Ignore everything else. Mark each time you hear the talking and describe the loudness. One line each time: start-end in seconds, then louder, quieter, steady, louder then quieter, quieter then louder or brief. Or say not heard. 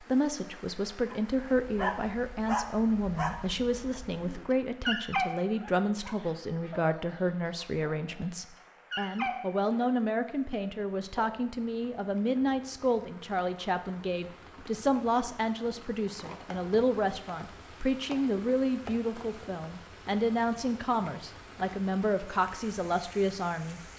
0.0-23.9 steady.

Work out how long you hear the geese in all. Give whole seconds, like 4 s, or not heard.
not heard.